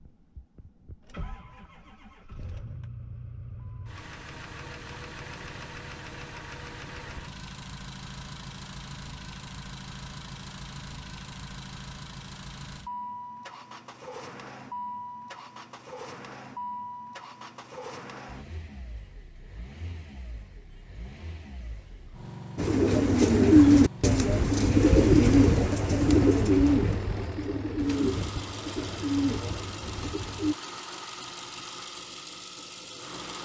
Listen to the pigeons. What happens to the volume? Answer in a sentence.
The loudness of the pigeons goes down.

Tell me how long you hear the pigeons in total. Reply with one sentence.
You can hear the pigeons for 8 seconds altogether.